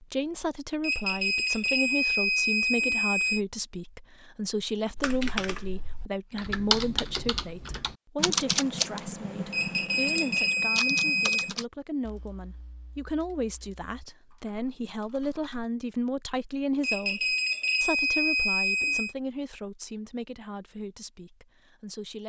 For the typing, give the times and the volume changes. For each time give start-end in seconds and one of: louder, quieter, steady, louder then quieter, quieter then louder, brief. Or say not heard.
5.0-15.7 quieter.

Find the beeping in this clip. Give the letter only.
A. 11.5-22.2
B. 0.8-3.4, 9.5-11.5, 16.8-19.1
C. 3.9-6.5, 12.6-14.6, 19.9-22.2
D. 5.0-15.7
B.